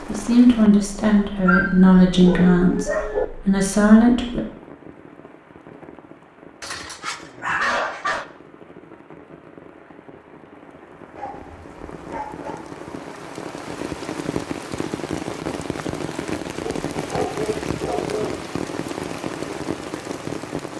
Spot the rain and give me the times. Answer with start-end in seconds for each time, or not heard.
0.0-20.7.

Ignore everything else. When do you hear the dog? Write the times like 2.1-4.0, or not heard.
1.4-3.2, 6.6-8.2, 11.2-12.8, 16.6-18.4.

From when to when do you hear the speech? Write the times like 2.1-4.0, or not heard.
0.1-4.4.